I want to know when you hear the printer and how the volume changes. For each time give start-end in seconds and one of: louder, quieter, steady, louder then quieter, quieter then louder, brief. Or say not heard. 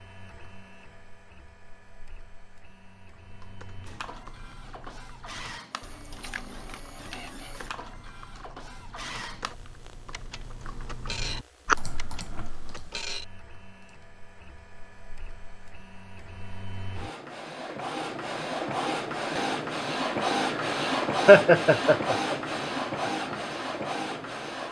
0.0-24.6 louder.